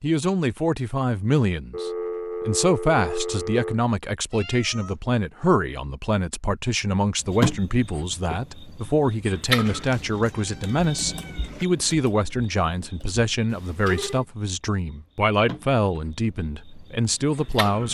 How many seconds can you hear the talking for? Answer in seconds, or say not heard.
18 s.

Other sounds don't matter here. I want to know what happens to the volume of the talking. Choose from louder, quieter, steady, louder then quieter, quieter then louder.
steady.